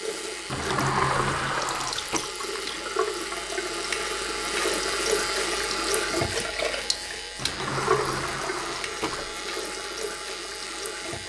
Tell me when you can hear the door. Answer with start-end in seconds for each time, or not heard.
0.5-2.3, 7.3-9.3.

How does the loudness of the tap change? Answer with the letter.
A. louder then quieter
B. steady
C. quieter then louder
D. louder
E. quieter
A.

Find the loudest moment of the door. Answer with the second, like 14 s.
1 s.